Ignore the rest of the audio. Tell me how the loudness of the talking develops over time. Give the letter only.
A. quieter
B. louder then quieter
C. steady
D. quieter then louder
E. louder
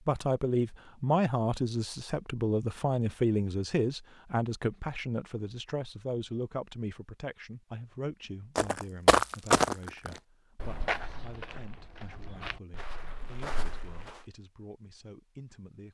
A.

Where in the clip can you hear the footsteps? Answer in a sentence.
The footsteps can be heard from 8.6 to 14.2 s.